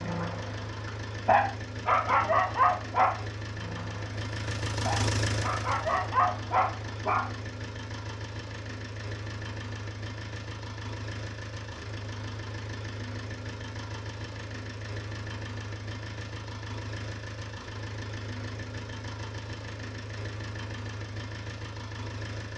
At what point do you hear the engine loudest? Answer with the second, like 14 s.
5 s.